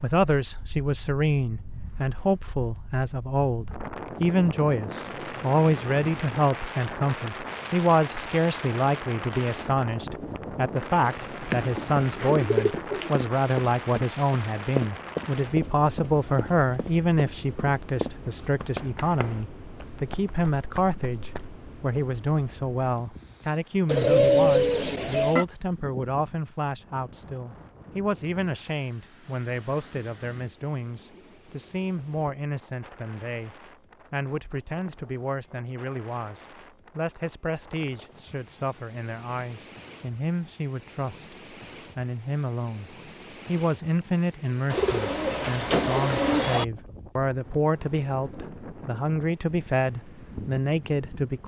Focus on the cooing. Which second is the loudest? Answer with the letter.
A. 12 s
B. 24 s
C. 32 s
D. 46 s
B.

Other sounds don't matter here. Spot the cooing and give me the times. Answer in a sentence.
You can hear the cooing from 11.4 to 13.1 s, from 23.9 to 25.4 s and from 44.7 to 46.6 s.